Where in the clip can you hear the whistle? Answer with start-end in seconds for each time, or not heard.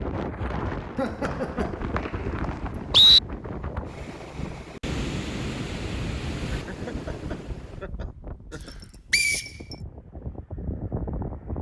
1.2-3.2, 9.1-9.5.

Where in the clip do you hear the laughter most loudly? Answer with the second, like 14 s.
1 s.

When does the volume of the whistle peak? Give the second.
3 s.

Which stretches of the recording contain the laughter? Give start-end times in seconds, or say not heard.
0.9-1.9, 6.5-8.8.